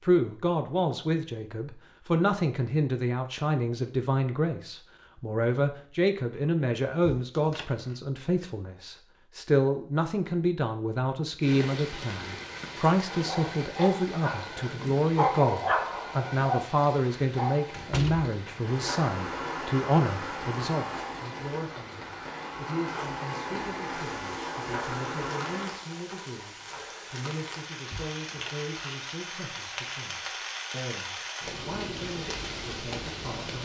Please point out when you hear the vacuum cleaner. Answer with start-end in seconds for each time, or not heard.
18.6-25.9.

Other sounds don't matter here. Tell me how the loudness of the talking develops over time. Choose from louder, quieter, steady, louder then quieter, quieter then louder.
quieter.